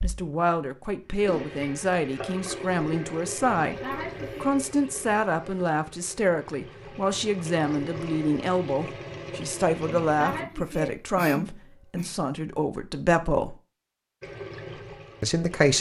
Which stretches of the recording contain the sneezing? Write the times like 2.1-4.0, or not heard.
3.6-4.5, 9.9-12.1.